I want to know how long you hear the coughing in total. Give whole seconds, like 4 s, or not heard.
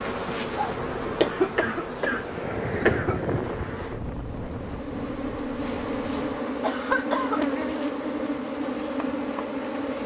3 s.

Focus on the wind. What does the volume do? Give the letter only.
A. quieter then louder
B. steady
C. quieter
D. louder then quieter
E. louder
D.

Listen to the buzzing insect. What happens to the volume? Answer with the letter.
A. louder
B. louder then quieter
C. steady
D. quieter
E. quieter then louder
E.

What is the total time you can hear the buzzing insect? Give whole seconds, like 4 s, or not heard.
10 s.